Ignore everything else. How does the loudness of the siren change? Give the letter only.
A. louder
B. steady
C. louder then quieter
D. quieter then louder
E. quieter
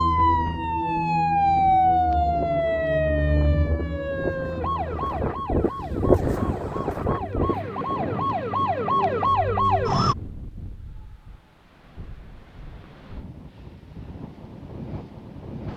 D.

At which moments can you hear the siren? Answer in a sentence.
You can hear the siren from 0.0 to 10.2 s.